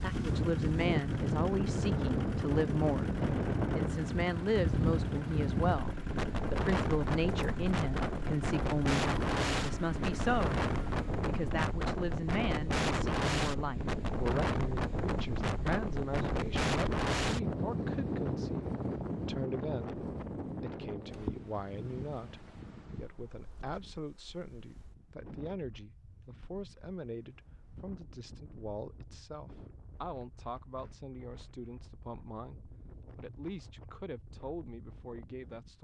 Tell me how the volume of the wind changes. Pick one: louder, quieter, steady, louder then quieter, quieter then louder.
quieter.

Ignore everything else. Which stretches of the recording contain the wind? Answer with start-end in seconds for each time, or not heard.
0.0-35.8.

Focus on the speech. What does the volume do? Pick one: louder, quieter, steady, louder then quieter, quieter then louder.
quieter.